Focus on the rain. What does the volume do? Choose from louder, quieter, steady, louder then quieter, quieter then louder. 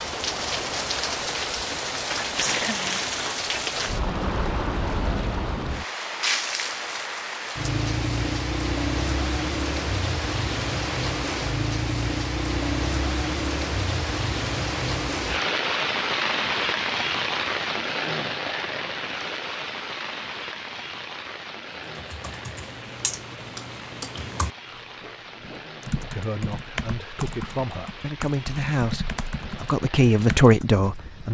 quieter.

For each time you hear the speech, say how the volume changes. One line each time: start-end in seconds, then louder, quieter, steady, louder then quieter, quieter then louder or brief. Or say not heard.
26.1-31.2 louder.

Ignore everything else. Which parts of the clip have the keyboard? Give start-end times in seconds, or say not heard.
21.7-31.1.